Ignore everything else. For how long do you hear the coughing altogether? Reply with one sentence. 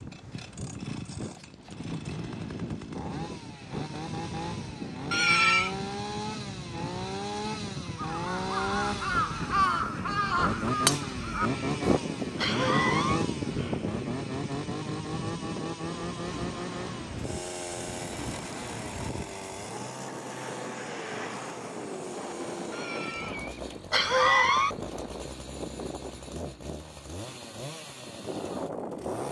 The coughing can be heard for 5 seconds in total.